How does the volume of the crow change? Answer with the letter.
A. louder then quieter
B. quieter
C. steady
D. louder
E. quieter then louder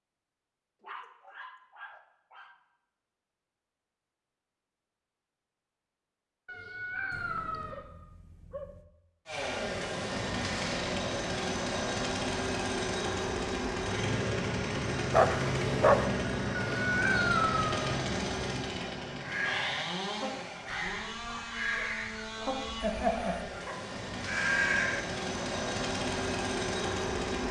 D.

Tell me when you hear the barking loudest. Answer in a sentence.
The volume of the barking peaks at 16 seconds.